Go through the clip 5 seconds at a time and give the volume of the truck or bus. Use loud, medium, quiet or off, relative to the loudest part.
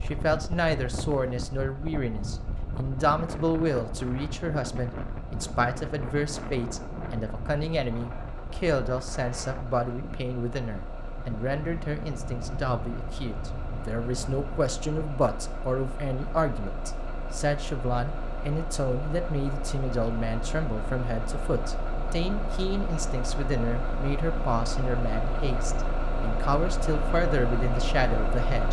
quiet, quiet, medium, medium, loud, loud.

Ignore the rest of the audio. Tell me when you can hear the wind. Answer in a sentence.
The wind can be heard from 0.0 to 15.1 s.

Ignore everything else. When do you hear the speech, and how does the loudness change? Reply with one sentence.
You can hear the speech from 0.0 to 28.6 s, at a steady volume.